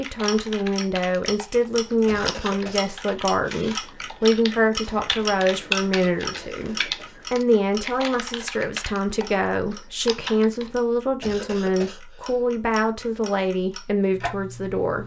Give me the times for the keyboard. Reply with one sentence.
The keyboard can be heard from 0.0 to 10.8 s.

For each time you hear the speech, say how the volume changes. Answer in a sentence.
The speech can be heard from 0.0 to 15.0 s, at a steady volume.